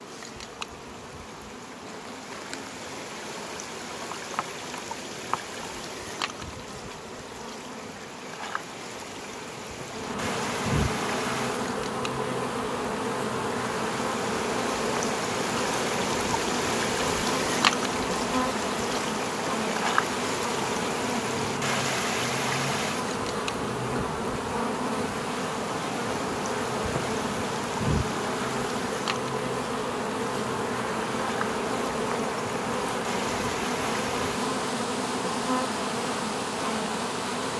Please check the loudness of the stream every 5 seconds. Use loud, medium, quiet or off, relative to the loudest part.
medium, medium, medium, loud, loud, medium, medium, medium.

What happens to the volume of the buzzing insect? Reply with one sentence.
The loudness of the buzzing insect goes up.